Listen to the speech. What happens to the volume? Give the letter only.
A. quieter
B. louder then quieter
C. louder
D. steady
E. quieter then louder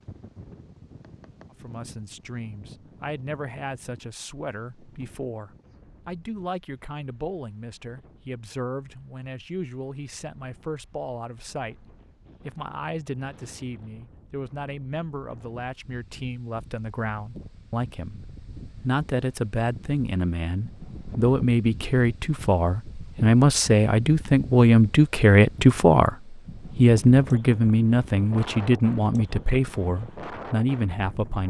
C.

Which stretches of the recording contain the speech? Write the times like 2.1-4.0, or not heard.
1.5-31.4.